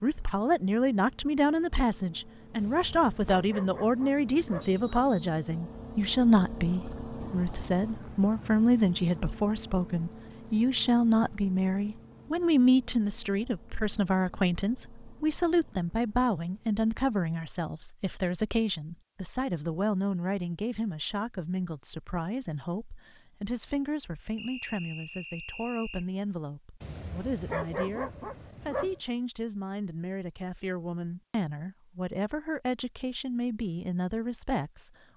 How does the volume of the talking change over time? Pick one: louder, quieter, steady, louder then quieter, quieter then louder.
quieter.